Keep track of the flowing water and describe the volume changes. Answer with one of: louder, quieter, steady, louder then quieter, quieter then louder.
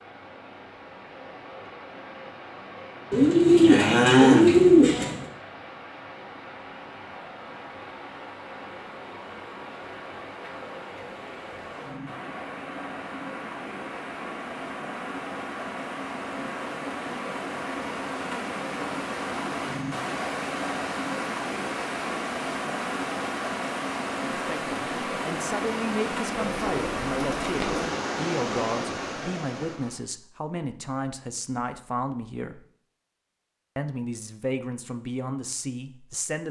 louder.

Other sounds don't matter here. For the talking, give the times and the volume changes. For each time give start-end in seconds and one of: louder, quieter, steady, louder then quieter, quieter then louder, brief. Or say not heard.
24.3-32.6 steady
33.8-36.4 brief.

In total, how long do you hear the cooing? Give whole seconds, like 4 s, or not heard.
4 s.